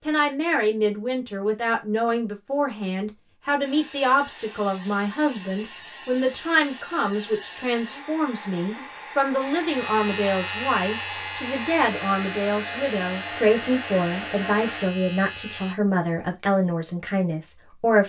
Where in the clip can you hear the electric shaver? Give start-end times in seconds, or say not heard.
9.3-15.8.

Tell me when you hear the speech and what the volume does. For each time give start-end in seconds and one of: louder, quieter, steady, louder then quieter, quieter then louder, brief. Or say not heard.
0.1-18.0 steady.